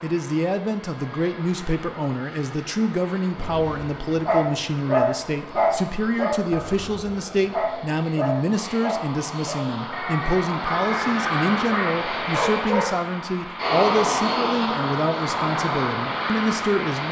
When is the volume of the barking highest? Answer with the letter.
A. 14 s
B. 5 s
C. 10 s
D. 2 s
B.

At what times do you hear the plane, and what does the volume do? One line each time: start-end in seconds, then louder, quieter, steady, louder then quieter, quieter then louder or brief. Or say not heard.
0.0-17.0 louder.